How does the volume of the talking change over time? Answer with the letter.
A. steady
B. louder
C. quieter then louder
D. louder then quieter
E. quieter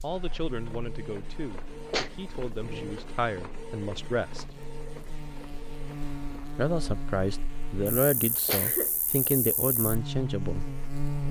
B.